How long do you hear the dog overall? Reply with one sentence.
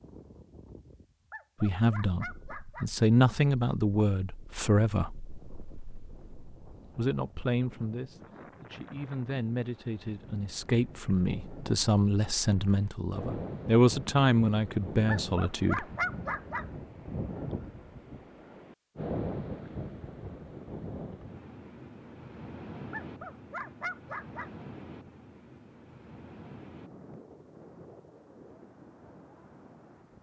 The dog can be heard for 5 seconds in total.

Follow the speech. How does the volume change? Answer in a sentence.
The volume of the speech goes down, then up.